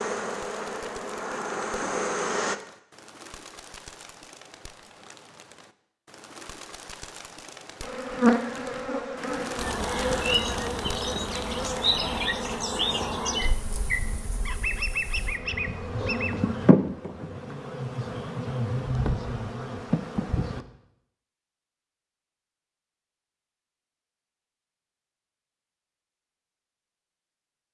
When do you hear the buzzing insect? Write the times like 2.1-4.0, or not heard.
0.0-2.5, 7.8-20.6.